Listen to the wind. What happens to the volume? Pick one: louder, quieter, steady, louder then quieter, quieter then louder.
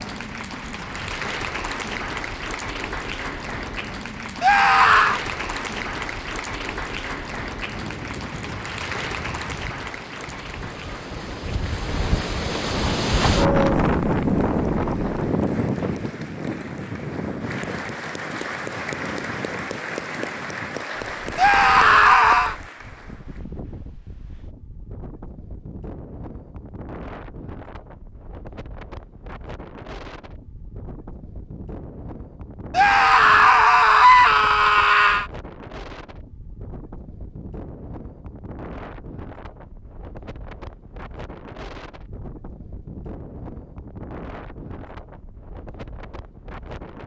louder then quieter.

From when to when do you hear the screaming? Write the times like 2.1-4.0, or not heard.
4.4-5.2, 21.4-22.6, 32.7-35.2.